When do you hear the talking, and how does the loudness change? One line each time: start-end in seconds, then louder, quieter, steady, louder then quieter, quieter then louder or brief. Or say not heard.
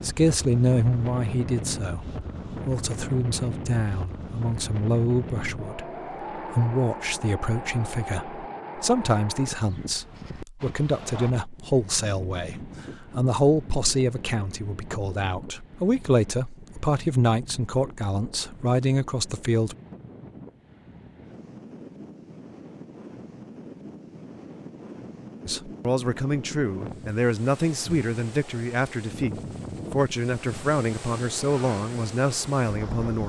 0.0-19.8 steady
25.4-33.2 steady.